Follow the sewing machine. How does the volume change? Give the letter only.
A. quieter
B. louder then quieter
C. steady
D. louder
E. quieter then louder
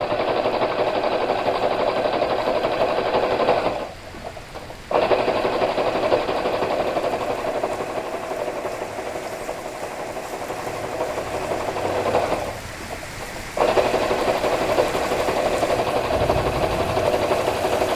E.